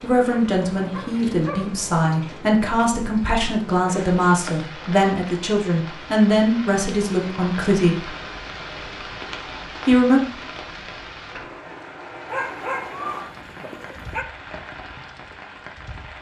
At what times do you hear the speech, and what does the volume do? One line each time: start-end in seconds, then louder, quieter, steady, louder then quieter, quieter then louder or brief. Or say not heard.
0.0-8.1 steady
9.8-10.2 brief.